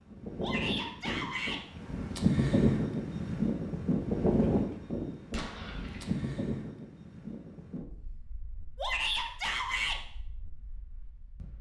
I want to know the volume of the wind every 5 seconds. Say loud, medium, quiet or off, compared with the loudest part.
loud, medium, quiet.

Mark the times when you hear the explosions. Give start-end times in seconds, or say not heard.
5.3-6.2.